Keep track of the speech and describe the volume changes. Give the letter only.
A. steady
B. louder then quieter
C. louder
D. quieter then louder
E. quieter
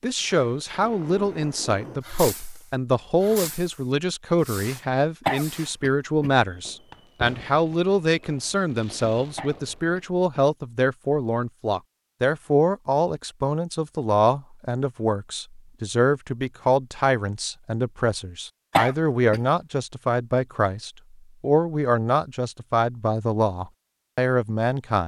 A.